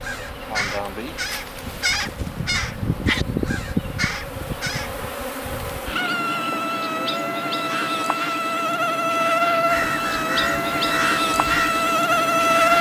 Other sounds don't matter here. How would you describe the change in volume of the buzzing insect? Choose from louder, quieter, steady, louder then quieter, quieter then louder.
louder.